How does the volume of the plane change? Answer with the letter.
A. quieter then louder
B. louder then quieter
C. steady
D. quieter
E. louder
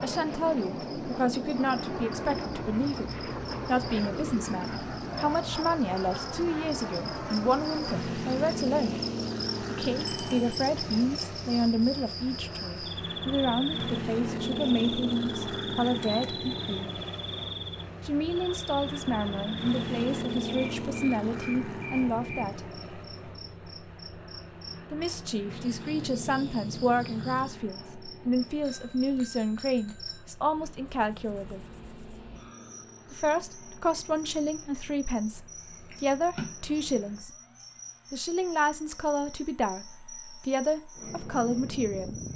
D.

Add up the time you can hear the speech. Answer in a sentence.
You can hear the speech for 36 seconds altogether.